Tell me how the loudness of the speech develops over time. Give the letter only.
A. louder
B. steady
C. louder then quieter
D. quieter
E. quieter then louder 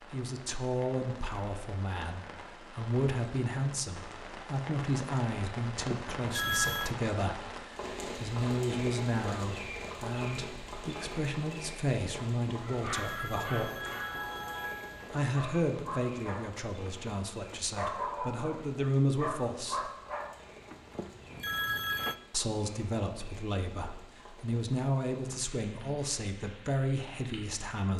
B.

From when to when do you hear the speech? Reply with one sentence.
The speech can be heard from 0.1 to 13.8 s, from 15.1 to 19.9 s and from 22.3 to 27.9 s.